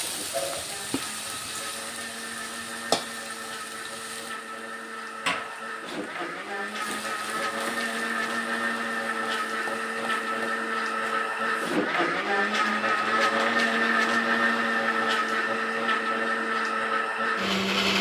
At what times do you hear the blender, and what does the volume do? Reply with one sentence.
The blender can be heard from 0.0 to 17.9 s, getting louder.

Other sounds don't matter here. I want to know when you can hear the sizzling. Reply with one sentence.
The sizzling can be heard from 0.0 to 11.8 s.